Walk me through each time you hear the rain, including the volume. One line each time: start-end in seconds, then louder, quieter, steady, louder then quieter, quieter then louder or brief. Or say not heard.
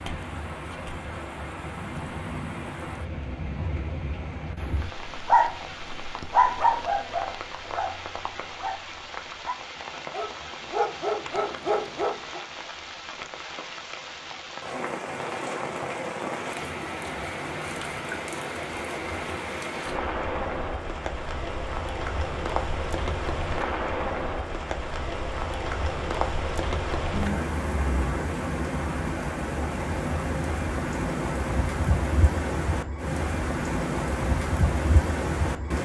0.0-35.7 louder.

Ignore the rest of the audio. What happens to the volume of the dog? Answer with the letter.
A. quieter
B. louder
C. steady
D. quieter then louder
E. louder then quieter
D.